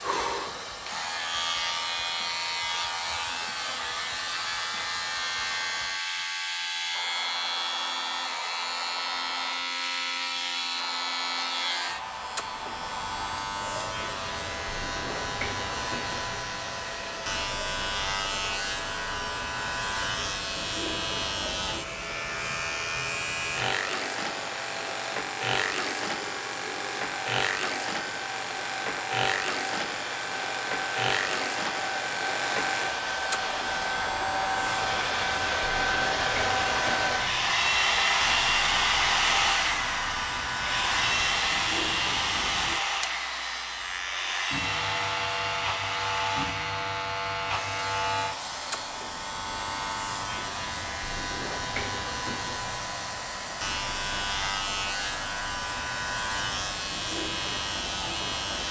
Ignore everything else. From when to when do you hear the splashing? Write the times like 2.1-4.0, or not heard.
not heard.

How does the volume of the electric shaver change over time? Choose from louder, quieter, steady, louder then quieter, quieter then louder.
steady.